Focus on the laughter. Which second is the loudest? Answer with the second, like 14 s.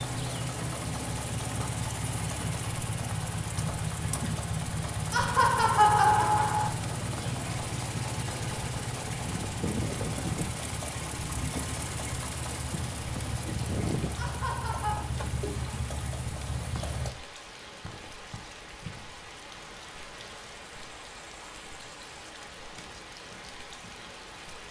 6 s.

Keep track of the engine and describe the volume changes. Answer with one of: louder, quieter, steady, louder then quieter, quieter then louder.
steady.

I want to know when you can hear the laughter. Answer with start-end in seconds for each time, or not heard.
5.1-6.7, 14.2-15.1.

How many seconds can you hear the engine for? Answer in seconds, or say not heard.
17 s.